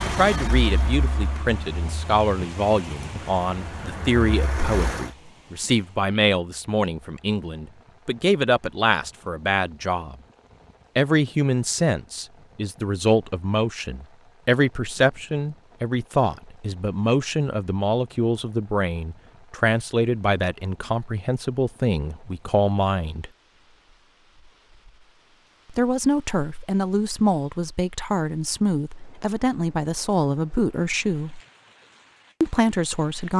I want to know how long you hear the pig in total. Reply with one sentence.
You can't hear the pig here.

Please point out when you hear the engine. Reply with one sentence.
You can hear the engine from 0.0 to 5.1 s.